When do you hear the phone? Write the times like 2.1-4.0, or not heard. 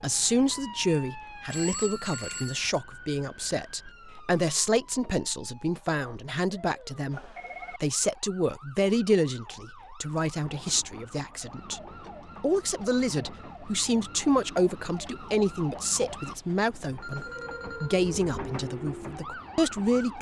1.5-2.7, 7.1-7.8, 16.8-18.1.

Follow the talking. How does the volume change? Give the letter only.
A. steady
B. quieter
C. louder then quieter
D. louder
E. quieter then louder
A.